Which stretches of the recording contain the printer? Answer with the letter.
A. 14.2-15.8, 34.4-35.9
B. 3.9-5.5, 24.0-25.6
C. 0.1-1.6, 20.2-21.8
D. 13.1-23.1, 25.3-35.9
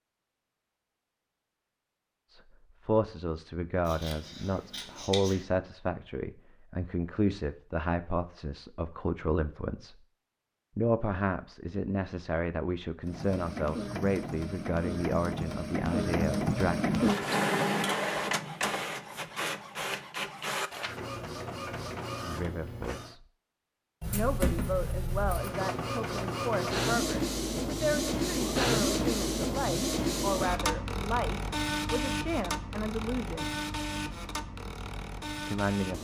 D.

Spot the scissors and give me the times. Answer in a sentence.
You can hear the scissors from 3.9 to 5.5 s and from 24.0 to 25.6 s.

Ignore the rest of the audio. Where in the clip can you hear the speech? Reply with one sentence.
You can hear the speech from 2.3 to 9.9 s, from 10.8 to 16.8 s, from 22.2 to 23.2 s, from 24.1 to 33.5 s and from 35.5 to 35.9 s.